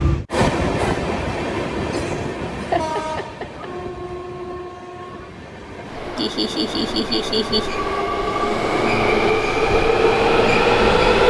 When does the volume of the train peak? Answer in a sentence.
The loudest moment of the train is at 11 seconds.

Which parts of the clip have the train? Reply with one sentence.
The train can be heard from 0.0 to 11.2 s.